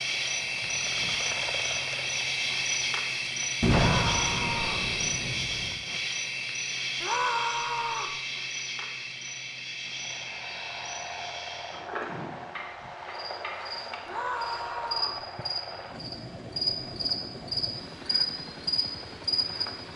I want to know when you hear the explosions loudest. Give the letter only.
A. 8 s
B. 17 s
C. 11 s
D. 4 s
D.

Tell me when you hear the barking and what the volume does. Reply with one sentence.
You can't hear the barking here.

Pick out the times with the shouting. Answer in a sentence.
You can hear the shouting from 3.8 to 4.9 s, from 7.0 to 8.2 s and from 14.1 to 15.2 s.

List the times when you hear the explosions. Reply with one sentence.
You can hear the explosions from 3.6 to 5.8 s.